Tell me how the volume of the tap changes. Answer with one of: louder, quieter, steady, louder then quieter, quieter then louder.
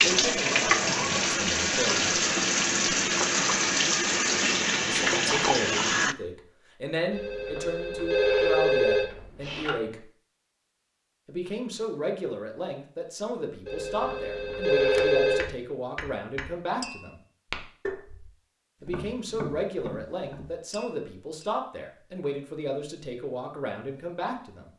steady.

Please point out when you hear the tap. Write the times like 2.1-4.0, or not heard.
0.0-6.2.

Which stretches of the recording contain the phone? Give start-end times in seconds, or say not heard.
7.1-9.8, 13.7-15.5.